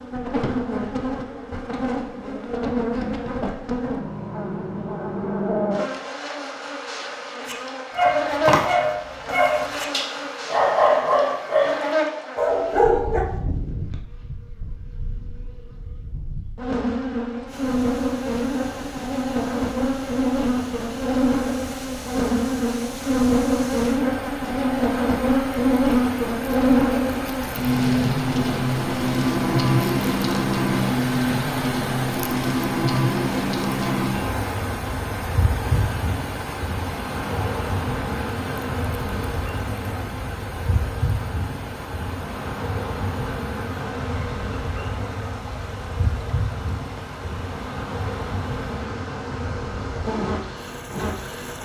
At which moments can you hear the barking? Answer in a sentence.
The barking can be heard from 7.5 to 13.2 s.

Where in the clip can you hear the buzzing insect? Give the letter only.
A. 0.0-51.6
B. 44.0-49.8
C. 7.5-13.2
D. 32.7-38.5
A.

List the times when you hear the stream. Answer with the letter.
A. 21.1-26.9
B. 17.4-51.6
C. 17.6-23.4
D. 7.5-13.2
B.